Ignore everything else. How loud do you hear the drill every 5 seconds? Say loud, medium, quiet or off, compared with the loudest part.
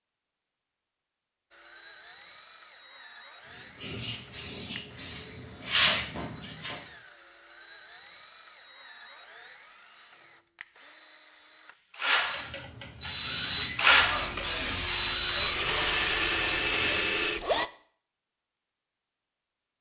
quiet, quiet, loud, loud.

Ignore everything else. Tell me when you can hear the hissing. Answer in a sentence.
You can hear the hissing from 3.4 to 6.8 s and from 12.3 to 17.4 s.